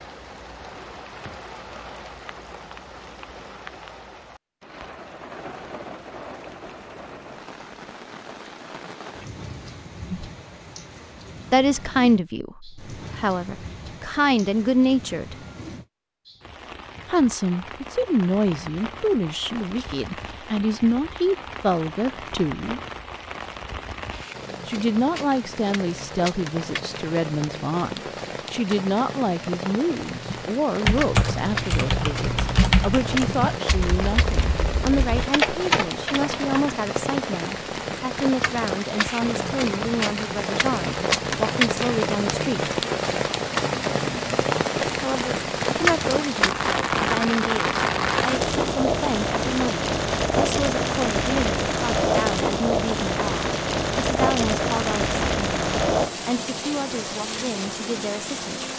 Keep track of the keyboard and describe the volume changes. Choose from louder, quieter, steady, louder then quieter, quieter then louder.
quieter then louder.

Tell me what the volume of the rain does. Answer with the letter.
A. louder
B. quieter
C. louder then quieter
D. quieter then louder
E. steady
A.